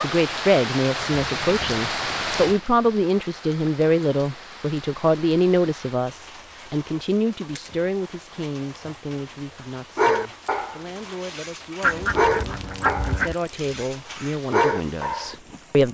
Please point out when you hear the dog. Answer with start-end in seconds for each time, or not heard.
9.9-15.3.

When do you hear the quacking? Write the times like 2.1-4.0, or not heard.
11.8-13.3.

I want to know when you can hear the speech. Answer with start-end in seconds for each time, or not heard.
0.0-15.8.